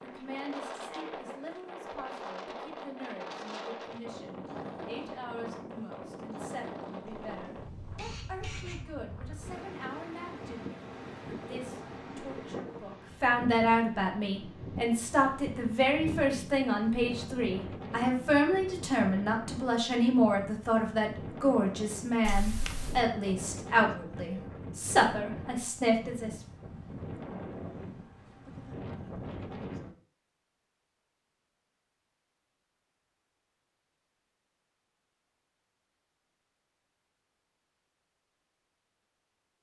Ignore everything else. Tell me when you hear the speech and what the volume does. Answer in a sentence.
The speech can be heard from 0.0 to 26.4 s, getting louder.